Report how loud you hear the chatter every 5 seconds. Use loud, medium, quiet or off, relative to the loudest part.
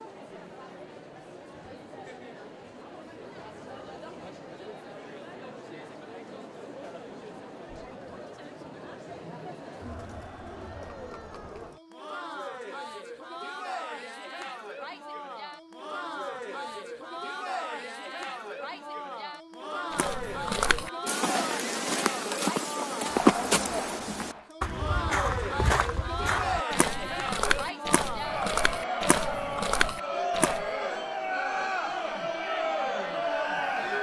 quiet, quiet, medium, medium, medium, loud, loud.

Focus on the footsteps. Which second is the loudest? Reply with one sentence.
The volume of the footsteps peaks at 23 seconds.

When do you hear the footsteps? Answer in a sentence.
You can hear the footsteps from 19.9 to 30.7 s.